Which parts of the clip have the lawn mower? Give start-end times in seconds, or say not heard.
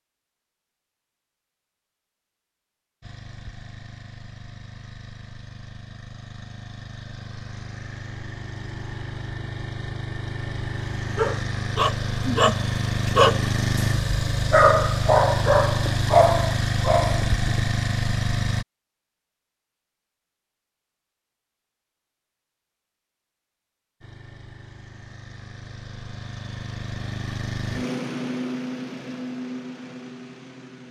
3.0-18.6, 24.0-30.8.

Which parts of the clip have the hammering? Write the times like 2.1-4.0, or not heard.
not heard.